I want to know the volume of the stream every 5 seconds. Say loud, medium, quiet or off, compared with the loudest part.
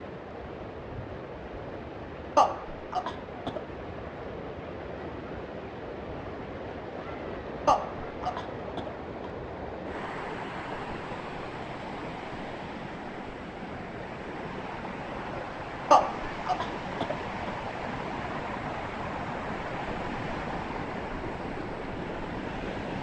medium, loud, loud, loud, loud.